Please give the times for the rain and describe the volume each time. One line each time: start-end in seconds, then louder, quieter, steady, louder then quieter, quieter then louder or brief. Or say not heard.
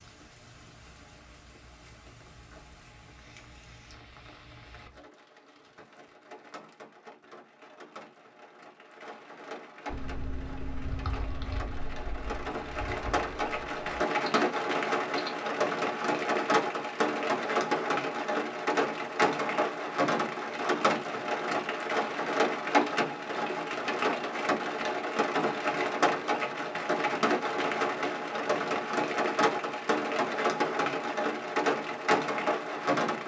0.0-33.2 louder.